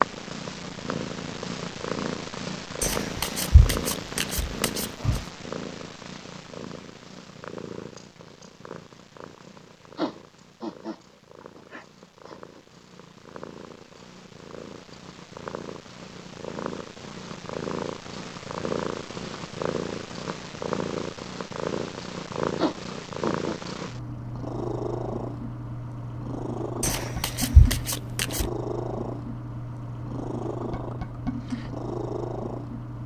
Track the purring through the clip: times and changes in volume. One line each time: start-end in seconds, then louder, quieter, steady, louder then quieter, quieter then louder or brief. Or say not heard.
0.0-33.0 quieter then louder.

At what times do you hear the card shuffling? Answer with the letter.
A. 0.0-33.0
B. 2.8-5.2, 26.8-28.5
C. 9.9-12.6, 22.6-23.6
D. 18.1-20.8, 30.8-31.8
B.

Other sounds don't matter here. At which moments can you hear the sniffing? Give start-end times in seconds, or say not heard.
9.9-12.6, 22.6-23.6.